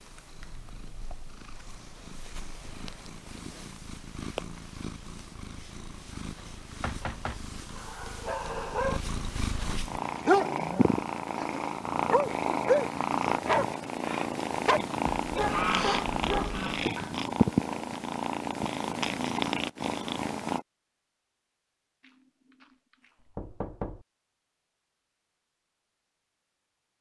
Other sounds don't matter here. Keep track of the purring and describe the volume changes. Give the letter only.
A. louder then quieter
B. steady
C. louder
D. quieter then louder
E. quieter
C.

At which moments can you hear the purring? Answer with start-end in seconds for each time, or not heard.
0.0-20.6.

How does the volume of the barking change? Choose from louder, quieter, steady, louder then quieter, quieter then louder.
louder then quieter.